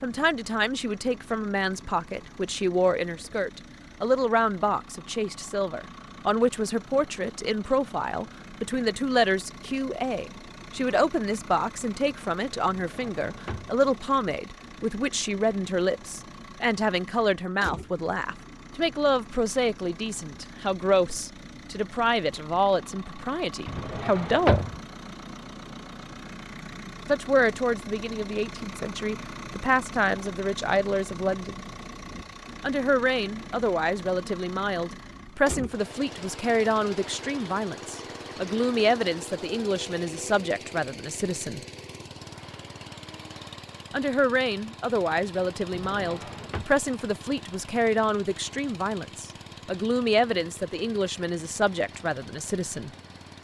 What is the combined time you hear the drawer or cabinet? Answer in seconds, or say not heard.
3 s.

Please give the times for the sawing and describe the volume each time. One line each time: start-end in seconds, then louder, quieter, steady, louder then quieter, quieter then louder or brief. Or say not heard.
not heard.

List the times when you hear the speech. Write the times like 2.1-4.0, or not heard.
0.0-24.6, 27.1-31.6, 32.6-41.6, 43.9-52.9.